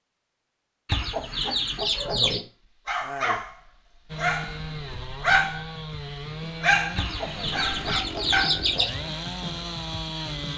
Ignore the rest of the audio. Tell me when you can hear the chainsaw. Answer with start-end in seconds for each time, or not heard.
4.0-10.5.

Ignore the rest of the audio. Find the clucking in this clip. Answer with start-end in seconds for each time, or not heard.
0.8-2.5, 7.0-8.9.